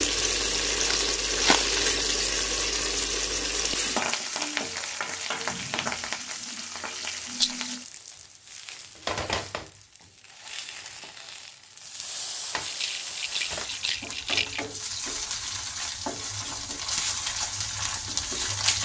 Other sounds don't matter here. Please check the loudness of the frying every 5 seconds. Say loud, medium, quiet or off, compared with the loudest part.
loud, medium, medium, loud.